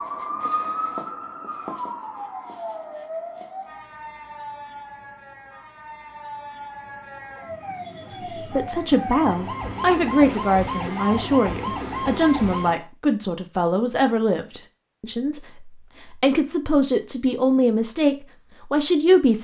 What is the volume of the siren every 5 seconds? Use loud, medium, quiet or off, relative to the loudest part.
loud, medium, loud, off.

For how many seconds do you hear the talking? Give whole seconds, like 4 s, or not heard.
11 s.